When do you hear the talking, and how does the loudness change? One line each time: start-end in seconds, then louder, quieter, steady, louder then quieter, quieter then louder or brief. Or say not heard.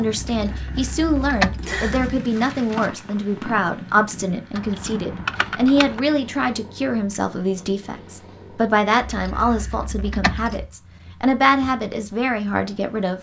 0.0-13.1 steady.